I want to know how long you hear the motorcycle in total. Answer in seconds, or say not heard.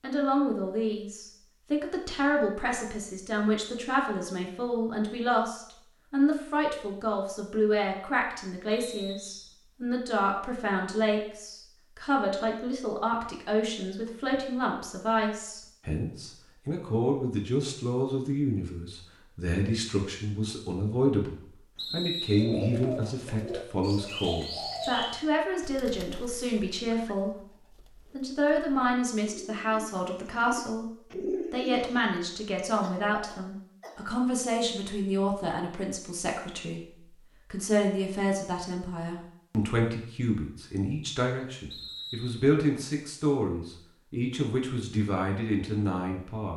not heard.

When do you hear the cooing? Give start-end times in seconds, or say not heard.
22.3-32.1.